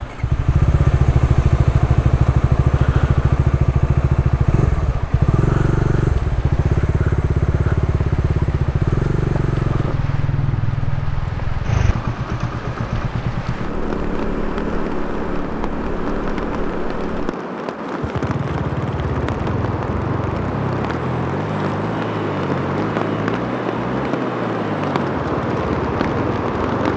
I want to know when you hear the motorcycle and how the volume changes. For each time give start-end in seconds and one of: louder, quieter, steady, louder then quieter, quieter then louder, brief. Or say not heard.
0.0-26.9 quieter.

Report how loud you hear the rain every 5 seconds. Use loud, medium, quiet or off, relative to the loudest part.
quiet, quiet, medium, medium, loud, loud.